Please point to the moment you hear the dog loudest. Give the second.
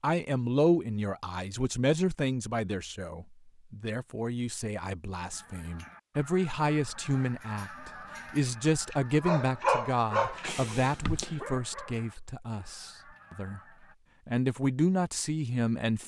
10 s.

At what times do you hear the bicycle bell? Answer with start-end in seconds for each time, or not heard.
10.4-11.4.